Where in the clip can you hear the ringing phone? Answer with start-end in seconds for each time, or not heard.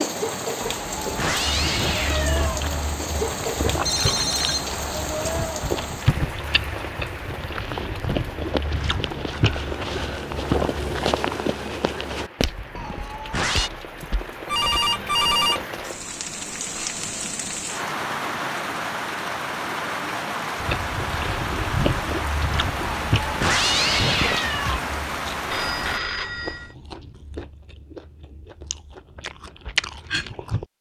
3.9-4.7, 14.4-15.7, 25.5-26.7.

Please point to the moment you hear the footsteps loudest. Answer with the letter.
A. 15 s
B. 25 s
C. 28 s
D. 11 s
D.